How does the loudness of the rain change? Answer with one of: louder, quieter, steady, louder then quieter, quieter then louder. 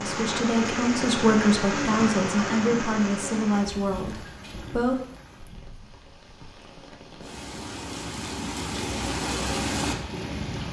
quieter then louder.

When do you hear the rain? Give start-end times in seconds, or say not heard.
0.0-10.6.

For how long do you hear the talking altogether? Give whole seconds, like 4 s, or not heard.
5 s.